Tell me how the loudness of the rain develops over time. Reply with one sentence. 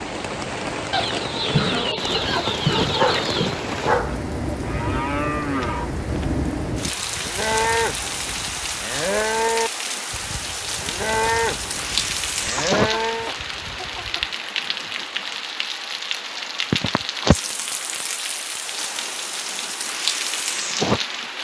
The volume of the rain stays about the same.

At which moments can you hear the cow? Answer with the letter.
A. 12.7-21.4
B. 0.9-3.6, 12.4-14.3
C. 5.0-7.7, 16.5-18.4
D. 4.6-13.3
D.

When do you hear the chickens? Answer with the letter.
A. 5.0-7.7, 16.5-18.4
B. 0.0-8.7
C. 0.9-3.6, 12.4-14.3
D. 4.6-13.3
C.